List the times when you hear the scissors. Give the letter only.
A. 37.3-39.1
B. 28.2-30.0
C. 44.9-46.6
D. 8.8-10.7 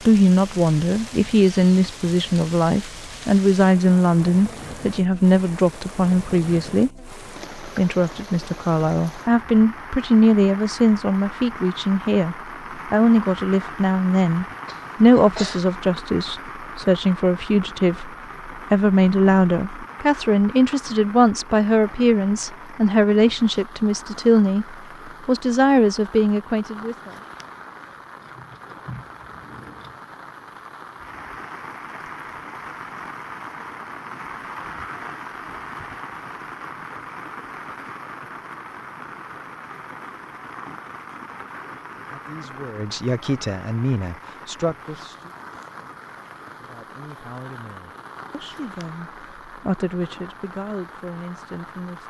B.